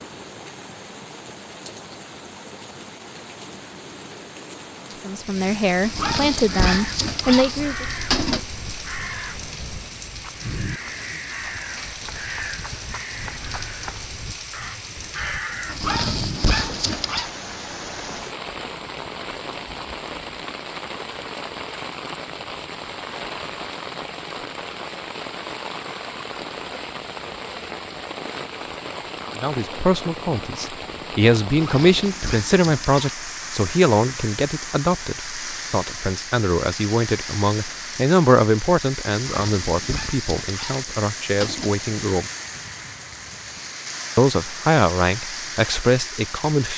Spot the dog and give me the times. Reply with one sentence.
The dog can be heard from 5.8 to 8.4 s, from 15.7 to 17.3 s, from 31.4 to 33.1 s and from 39.2 to 41.8 s.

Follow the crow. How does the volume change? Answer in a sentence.
The loudness of the crow stays about the same.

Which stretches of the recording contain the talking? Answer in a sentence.
The talking can be heard from 5.0 to 7.8 s, from 29.3 to 42.3 s and from 44.1 to 46.7 s.